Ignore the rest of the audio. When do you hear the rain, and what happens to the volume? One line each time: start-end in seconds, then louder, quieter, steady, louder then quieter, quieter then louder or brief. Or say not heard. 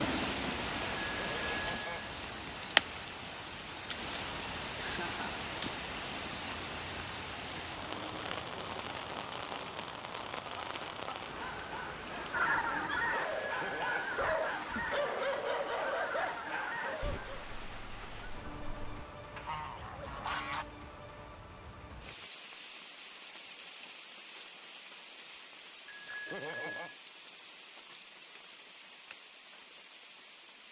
0.0-30.6 quieter.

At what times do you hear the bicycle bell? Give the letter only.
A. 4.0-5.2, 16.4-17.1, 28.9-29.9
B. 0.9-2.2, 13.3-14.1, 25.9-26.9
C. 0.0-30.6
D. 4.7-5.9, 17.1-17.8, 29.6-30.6
B.